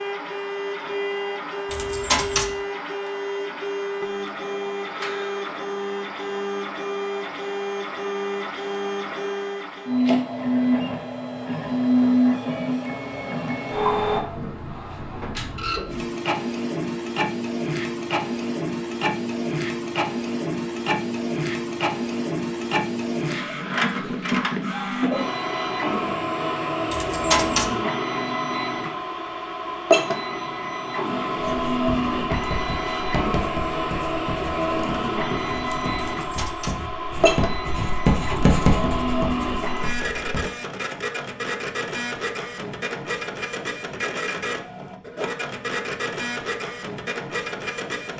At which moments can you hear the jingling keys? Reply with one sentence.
The jingling keys can be heard from 1.7 to 2.5 s, from 26.9 to 27.8 s and from 36.0 to 36.8 s.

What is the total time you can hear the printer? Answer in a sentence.
The printer can be heard for 48 seconds in total.